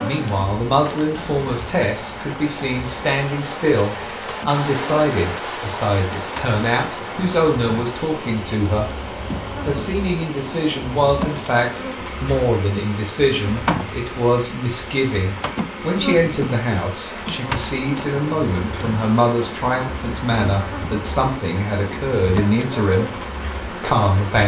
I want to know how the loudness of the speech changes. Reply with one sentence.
The volume of the speech stays about the same.